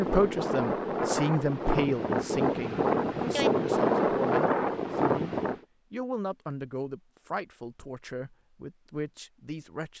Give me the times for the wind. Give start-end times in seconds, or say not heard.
0.0-5.6.